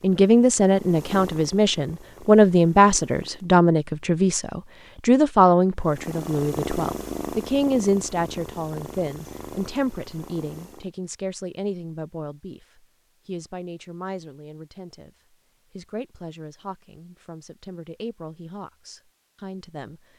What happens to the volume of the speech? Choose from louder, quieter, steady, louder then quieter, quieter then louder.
quieter.